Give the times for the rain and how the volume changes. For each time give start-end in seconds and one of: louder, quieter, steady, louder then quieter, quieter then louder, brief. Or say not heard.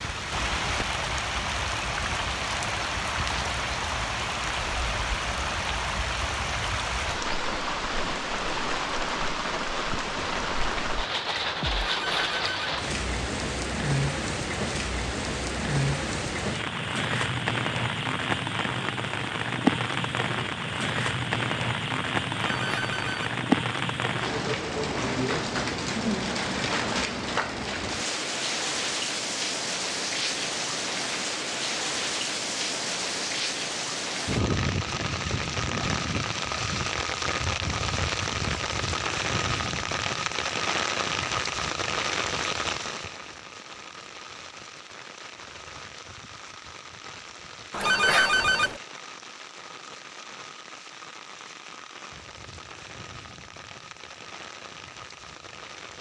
0.0-55.9 quieter.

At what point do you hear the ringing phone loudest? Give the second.
48 s.